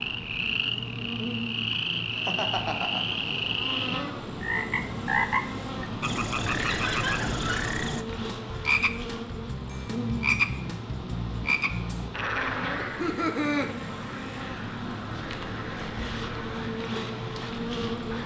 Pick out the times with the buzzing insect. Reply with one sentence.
The buzzing insect can be heard from 0.0 to 18.2 s.